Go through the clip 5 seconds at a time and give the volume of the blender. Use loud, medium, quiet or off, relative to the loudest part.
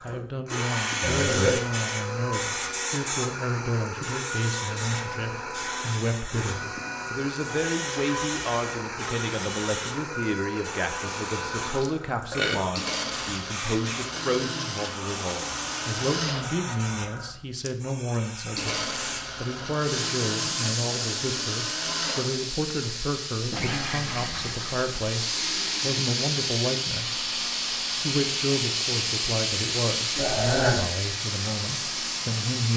loud, loud, loud, loud, loud, medium, medium.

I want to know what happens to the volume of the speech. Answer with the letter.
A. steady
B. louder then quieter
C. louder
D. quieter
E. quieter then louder
A.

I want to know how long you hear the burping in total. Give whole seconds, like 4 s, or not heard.
3 s.